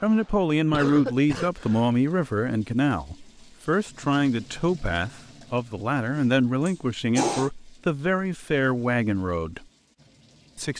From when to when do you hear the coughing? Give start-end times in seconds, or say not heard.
0.7-1.9, 6.2-7.5.